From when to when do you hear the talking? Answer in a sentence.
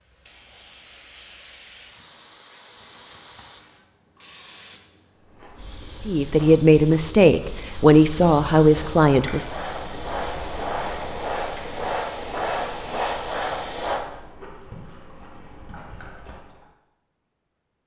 The talking can be heard from 6.0 to 9.6 s.